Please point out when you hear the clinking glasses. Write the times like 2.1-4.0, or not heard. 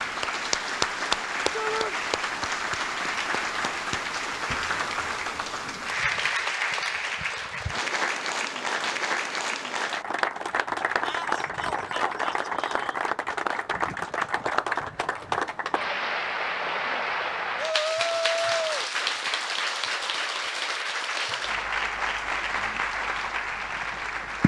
not heard.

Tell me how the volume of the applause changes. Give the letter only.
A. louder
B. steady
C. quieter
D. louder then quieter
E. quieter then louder
B.